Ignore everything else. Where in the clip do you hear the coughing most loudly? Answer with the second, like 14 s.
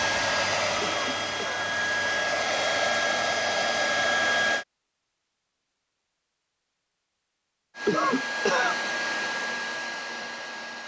8 s.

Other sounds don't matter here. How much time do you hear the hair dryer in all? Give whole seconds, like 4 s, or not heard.
8 s.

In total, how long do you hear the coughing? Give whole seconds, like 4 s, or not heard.
2 s.